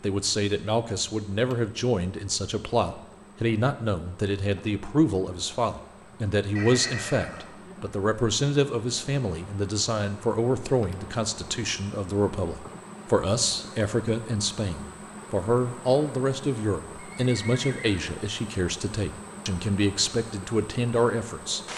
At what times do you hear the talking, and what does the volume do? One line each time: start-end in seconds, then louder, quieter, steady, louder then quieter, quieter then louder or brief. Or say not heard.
0.0-21.6 steady.